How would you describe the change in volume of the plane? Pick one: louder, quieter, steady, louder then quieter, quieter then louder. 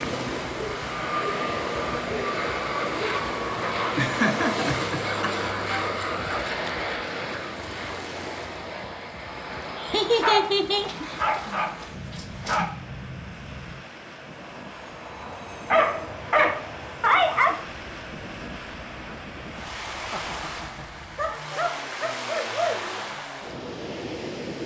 quieter.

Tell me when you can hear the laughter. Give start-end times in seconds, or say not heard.
4.0-5.3, 9.8-11.4, 20.1-20.9.